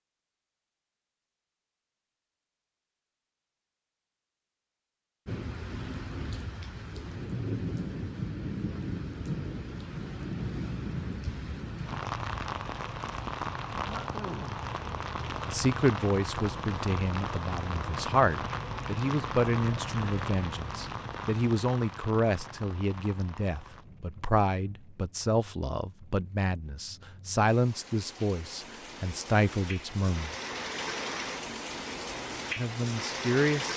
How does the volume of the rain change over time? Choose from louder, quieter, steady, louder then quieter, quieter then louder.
quieter then louder.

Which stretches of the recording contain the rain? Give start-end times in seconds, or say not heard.
5.2-33.7.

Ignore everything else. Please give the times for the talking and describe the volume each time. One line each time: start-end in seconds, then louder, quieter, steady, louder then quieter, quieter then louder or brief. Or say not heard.
15.4-30.4 steady
32.5-33.7 brief.